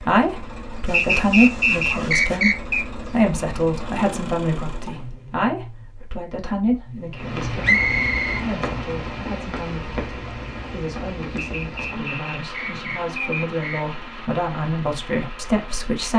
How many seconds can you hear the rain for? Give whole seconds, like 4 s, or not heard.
9 s.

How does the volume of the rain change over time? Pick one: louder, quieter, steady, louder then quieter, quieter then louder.
quieter.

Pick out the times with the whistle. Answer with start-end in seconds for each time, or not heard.
0.9-2.9, 7.6-8.4, 11.3-13.8.